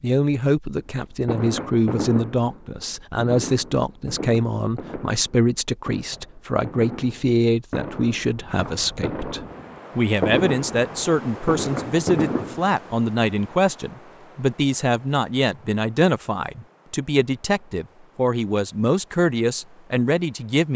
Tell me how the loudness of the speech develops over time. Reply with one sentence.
The volume of the speech stays about the same.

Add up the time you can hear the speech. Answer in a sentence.
You can hear the speech for 21 seconds altogether.